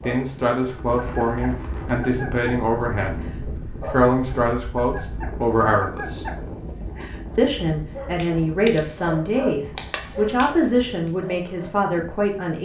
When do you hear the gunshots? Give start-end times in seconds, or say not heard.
8.7-10.2.